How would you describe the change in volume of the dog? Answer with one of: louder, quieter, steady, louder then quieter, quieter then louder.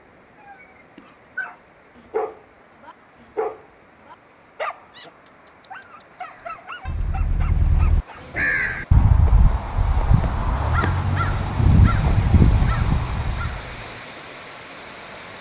quieter.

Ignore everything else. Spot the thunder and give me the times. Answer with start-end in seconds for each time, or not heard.
10.8-12.3.